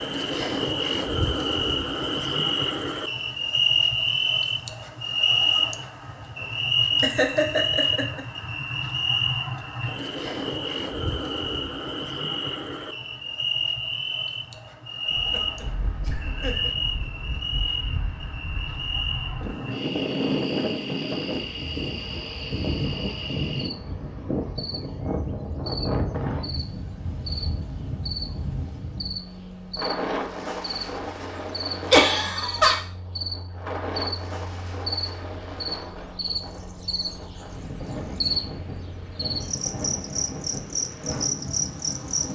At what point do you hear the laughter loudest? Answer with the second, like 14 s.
32 s.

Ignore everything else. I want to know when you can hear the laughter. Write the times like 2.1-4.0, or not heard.
7.0-8.2, 15.1-16.7, 31.9-32.8.